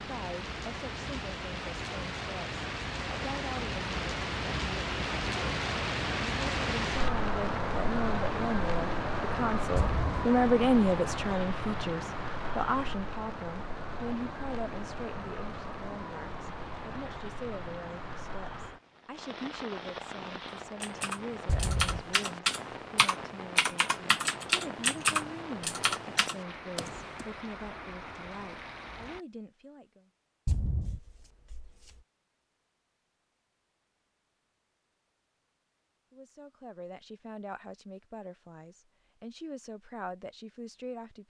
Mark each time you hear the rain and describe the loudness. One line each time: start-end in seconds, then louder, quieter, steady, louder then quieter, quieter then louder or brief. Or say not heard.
0.0-29.2 quieter.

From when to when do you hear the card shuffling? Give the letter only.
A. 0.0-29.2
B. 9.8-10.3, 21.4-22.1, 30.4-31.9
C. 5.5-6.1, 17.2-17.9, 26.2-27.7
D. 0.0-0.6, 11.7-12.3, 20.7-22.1
B.